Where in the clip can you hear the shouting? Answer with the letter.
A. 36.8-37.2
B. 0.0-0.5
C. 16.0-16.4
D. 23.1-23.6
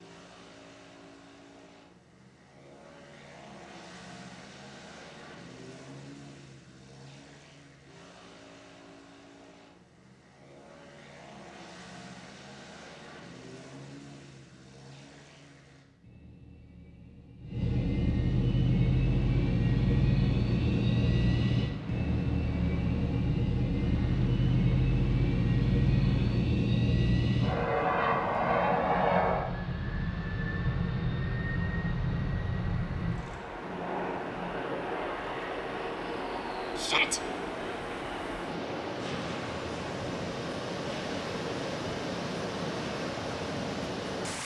A.